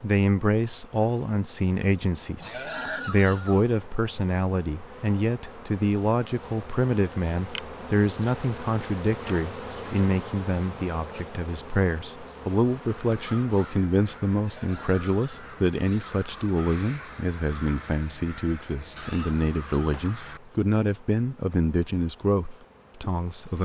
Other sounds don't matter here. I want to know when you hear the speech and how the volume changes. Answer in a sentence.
You can hear the speech from 0.0 to 23.6 s, at a steady volume.